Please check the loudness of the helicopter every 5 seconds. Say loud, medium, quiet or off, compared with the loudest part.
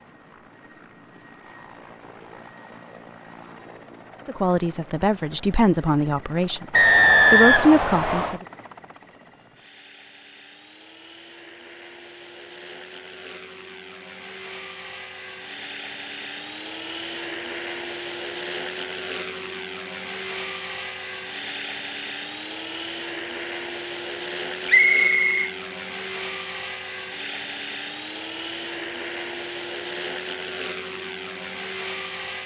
quiet, quiet, medium, loud, loud, loud, loud.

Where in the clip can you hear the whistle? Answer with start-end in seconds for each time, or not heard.
6.7-8.4, 24.6-25.5.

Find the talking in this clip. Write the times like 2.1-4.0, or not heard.
4.2-8.4.